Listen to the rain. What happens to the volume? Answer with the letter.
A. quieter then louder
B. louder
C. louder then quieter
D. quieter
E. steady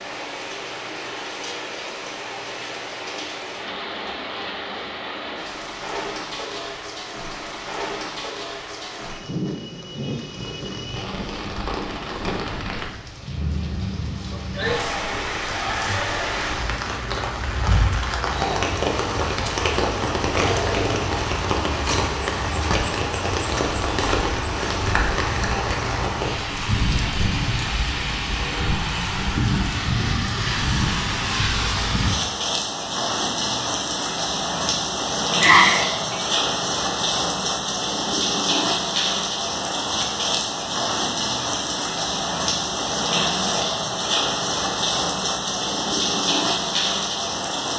B.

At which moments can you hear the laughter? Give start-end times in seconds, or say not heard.
35.4-36.1.